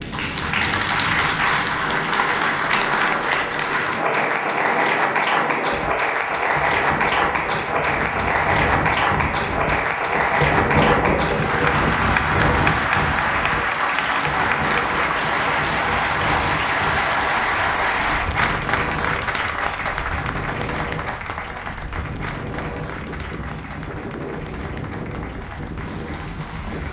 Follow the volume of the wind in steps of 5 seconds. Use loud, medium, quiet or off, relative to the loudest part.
medium, medium, loud, medium, medium, medium.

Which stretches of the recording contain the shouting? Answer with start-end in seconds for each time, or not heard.
not heard.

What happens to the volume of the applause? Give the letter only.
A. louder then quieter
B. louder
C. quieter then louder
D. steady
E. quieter
E.